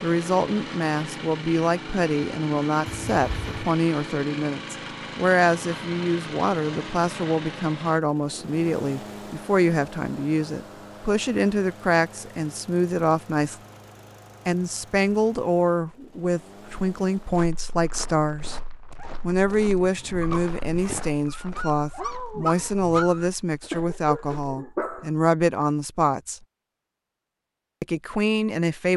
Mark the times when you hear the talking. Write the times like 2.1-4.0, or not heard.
0.0-13.6, 14.4-18.6, 19.2-26.4, 27.8-28.9.